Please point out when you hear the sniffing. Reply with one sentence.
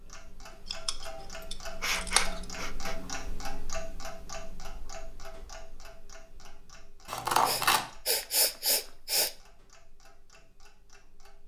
The sniffing can be heard from 1.4 to 3.0 s and from 7.5 to 9.3 s.